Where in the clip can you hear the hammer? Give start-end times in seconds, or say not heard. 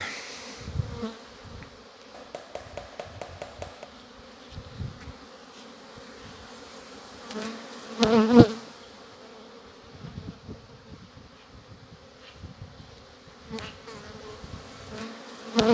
2.1-3.9.